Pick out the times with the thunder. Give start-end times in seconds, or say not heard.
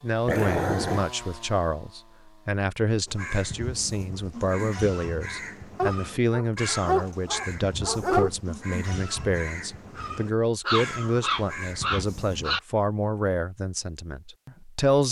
not heard.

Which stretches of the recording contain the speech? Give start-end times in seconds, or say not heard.
0.0-15.0.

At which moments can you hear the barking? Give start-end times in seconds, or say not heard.
0.2-1.1, 5.8-8.3, 10.7-12.6.